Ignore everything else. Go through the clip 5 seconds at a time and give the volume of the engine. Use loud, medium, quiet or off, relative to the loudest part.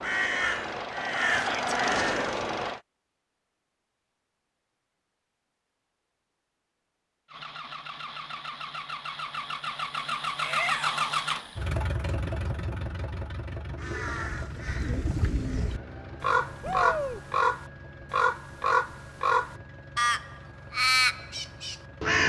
loud, medium, loud, quiet, quiet.